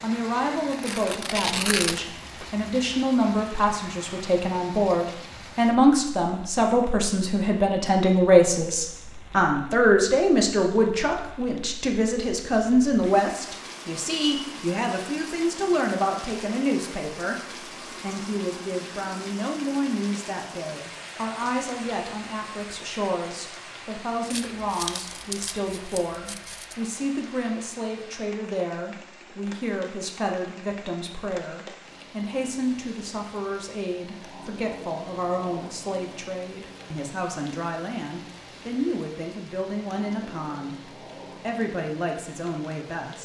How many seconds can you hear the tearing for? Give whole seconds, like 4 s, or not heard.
4 s.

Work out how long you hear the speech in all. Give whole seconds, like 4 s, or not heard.
42 s.